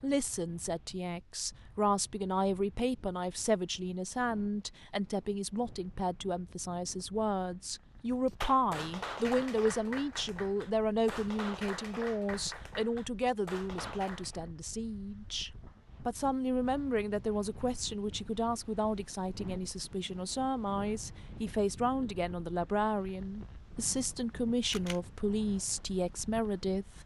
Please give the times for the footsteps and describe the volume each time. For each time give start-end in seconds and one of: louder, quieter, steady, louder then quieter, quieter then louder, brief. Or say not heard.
not heard.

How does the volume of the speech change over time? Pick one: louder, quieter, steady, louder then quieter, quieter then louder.
steady.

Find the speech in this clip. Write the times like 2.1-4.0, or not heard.
0.0-26.9.